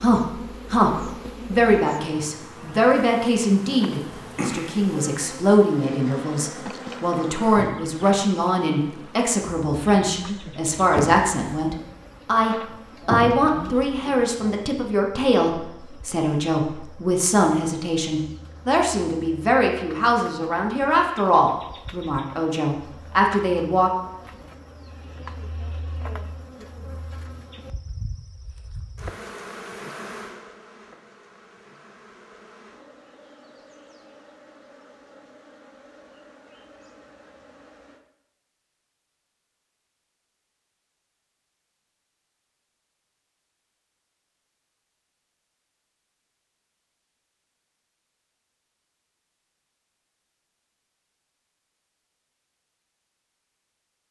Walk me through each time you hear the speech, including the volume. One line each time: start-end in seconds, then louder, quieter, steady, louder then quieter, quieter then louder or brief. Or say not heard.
0.0-23.9 steady.